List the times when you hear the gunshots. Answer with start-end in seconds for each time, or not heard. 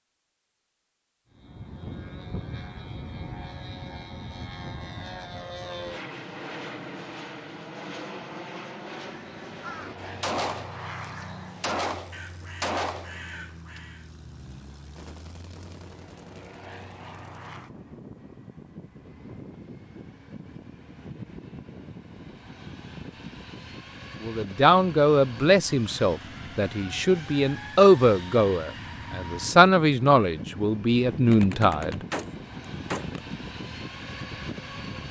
10.2-13.8, 31.3-33.2.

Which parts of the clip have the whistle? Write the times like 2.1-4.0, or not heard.
not heard.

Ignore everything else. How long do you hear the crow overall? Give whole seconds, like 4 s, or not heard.
5 s.